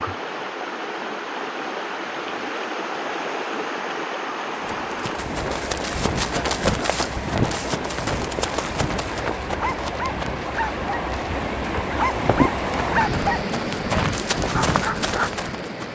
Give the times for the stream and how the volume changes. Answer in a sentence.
The stream can be heard from 0.0 to 15.9 s, at a steady volume.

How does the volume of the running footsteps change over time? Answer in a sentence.
The volume of the running footsteps goes down, then up.